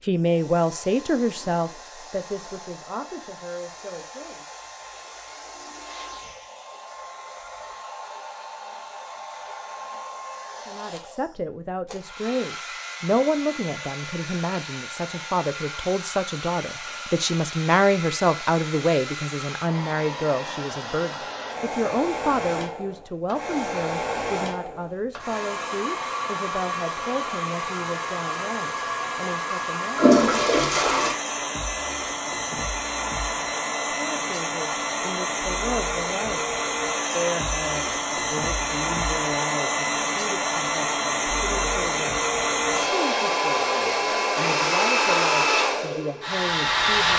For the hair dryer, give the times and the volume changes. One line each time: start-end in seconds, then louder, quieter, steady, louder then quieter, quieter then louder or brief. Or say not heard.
0.0-47.1 louder.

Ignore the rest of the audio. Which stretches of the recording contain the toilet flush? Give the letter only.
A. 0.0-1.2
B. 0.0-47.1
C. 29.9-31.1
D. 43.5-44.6
C.